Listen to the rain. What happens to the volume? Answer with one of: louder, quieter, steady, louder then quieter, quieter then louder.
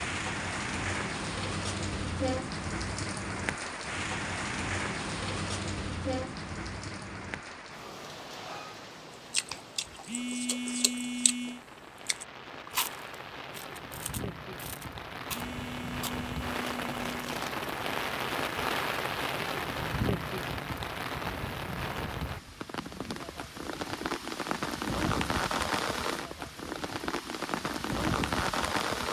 quieter then louder.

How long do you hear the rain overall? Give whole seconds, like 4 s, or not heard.
29 s.